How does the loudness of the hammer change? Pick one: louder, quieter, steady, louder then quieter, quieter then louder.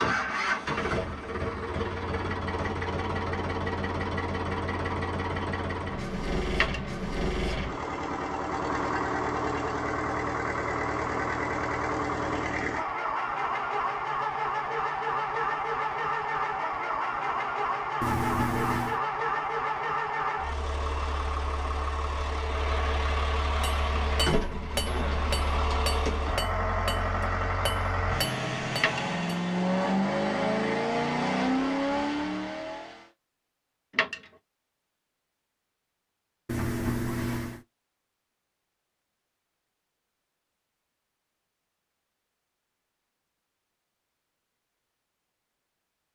steady.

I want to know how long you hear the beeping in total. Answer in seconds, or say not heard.
2 s.